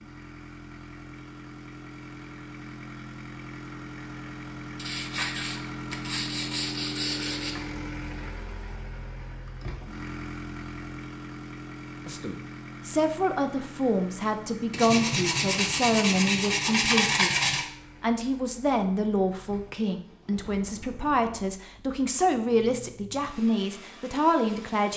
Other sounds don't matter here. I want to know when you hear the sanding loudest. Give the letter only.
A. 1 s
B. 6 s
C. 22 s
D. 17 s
D.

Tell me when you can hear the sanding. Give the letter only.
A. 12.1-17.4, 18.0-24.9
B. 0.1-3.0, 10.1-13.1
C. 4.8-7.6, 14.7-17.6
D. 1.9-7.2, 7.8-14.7
C.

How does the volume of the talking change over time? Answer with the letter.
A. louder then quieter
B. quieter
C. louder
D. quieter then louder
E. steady
E.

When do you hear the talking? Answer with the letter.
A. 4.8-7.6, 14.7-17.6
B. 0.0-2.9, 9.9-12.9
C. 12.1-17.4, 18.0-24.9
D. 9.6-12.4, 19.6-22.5
C.